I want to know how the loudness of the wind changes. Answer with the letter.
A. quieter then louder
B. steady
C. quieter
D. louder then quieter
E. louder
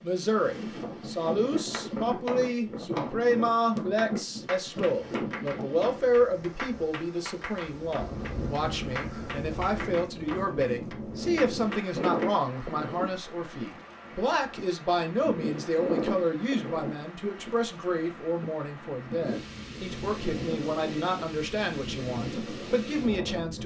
B.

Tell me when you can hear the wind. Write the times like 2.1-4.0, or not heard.
0.0-23.6.